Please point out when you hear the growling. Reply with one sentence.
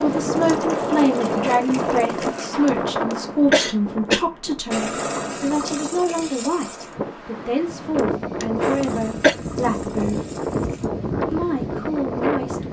You can't hear the growling here.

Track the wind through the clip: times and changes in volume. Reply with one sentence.
You can hear the wind from 0.0 to 12.6 s, getting quieter then louder.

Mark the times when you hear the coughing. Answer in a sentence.
The coughing can be heard from 2.6 to 4.2 s and from 8.0 to 9.3 s.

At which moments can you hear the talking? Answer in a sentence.
You can hear the talking from 0.0 to 10.2 s and from 11.3 to 12.6 s.